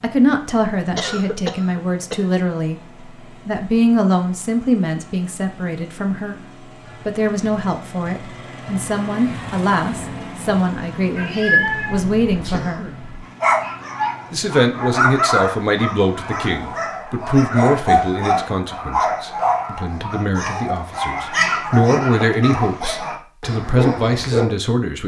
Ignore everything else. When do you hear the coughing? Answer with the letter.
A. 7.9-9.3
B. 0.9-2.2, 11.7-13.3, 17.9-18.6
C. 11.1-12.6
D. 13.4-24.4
B.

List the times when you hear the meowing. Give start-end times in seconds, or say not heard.
11.1-12.6.